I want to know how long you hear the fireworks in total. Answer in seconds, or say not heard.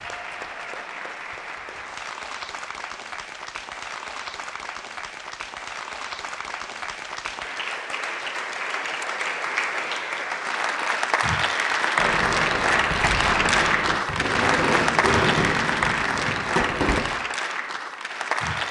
5 s.